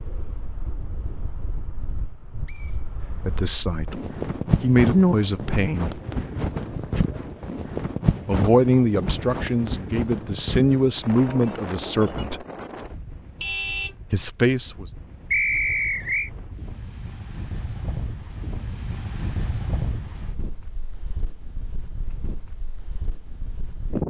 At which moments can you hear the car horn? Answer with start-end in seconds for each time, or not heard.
13.4-13.9.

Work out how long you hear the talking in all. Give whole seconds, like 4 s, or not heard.
8 s.